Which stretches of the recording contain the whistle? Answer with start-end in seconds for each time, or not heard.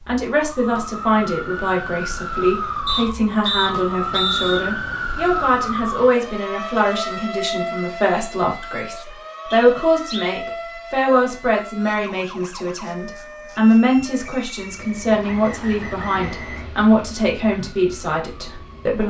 2.9-4.7, 9.5-10.3, 15.2-16.7.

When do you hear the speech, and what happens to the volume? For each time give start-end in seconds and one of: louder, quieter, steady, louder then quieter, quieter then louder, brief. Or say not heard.
0.1-19.0 steady.